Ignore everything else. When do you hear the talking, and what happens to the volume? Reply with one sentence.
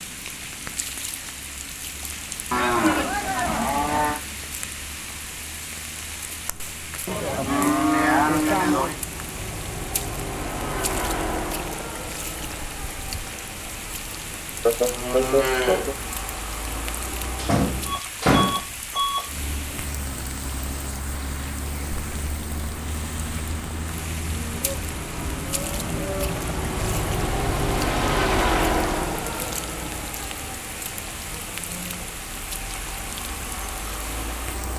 The talking can't be heard in this clip.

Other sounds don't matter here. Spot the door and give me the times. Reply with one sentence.
You can hear the door from 17.4 to 18.6 s.